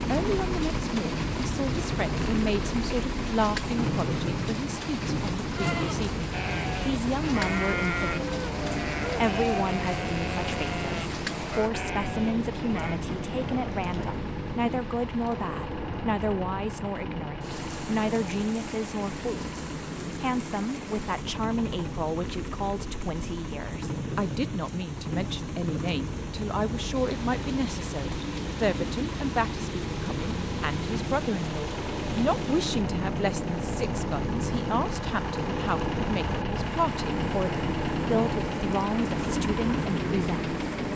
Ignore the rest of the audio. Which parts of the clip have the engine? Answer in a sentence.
You can hear the engine from 0.0 to 40.9 s.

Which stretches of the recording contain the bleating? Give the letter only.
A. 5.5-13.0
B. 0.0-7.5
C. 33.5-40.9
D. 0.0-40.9
A.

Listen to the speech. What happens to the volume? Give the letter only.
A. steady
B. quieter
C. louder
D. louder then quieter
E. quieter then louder
A.